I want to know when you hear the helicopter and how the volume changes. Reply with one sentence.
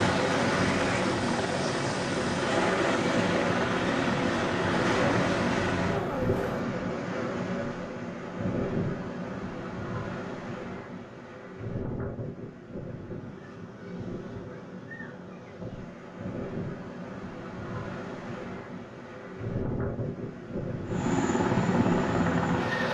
The helicopter can be heard from 0.0 to 6.7 s, at a steady volume; and briefly from 20.9 to 22.8 s.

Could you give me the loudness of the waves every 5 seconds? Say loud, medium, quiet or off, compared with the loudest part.
loud, loud, medium, medium, loud.